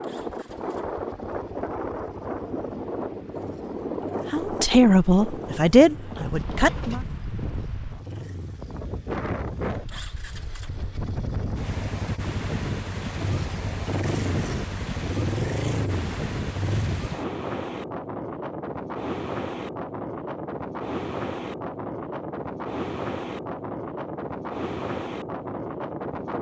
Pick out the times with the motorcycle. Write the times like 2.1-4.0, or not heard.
0.0-17.1.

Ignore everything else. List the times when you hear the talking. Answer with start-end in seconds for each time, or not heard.
4.3-7.0.